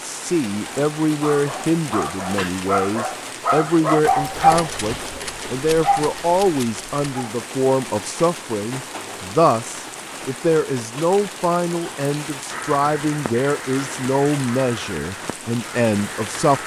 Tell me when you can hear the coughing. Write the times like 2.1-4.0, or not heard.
not heard.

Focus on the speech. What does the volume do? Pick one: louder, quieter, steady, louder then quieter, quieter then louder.
steady.